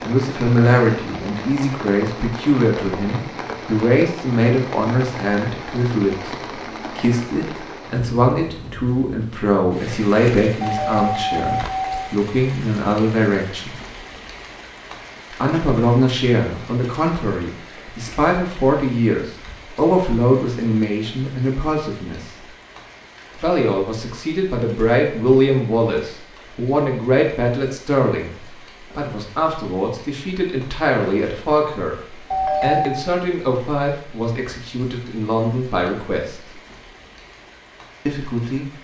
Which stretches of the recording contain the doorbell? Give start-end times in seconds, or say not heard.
10.6-12.1, 32.3-33.0.